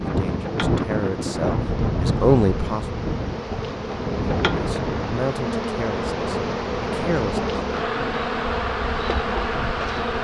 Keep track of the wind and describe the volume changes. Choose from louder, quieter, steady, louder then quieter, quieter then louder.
quieter.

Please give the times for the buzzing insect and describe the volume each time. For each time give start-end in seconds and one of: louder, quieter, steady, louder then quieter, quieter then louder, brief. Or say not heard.
0.0-10.1 louder.